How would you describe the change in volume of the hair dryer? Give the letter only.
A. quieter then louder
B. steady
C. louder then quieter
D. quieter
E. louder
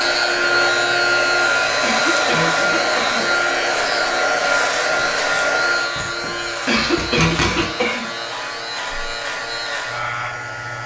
D.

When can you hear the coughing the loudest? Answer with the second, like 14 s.
7 s.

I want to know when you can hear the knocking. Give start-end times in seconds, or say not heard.
6.0-7.7.